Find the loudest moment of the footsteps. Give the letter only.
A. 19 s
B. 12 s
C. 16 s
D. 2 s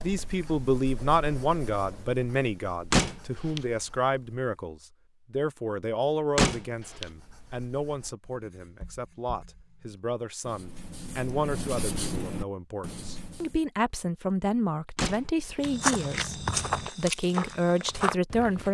C.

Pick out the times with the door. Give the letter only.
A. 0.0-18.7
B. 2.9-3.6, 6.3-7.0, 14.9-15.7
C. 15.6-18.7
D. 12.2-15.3
B.